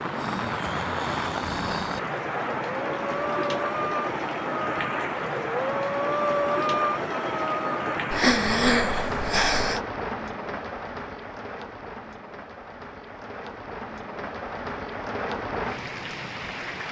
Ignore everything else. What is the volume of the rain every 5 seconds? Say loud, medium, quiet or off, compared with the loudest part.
loud, loud, medium, loud.